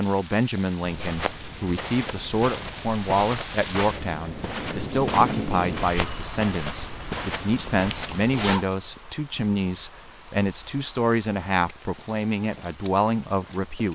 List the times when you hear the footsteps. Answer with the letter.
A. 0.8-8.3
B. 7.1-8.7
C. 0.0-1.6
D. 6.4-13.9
A.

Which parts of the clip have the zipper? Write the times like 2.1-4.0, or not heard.
7.1-8.7.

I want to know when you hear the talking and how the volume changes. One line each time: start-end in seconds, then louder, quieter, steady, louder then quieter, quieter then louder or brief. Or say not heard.
0.0-13.9 steady.